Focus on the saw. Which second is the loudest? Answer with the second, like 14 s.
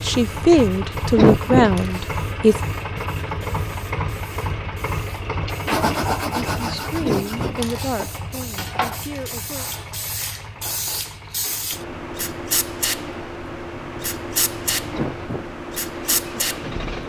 6 s.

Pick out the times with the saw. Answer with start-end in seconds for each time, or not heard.
5.7-11.1.